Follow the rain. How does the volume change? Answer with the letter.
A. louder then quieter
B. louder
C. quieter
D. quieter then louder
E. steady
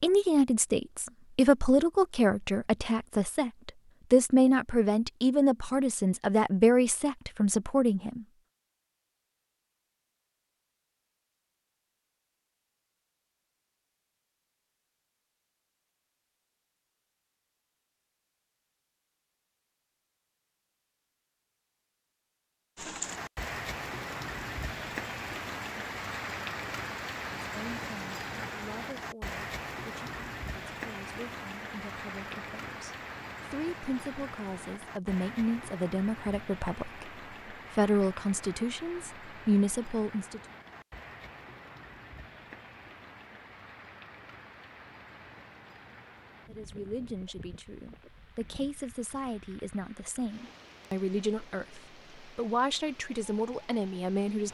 C.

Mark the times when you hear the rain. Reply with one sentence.
The rain can be heard from 22.8 to 54.4 s.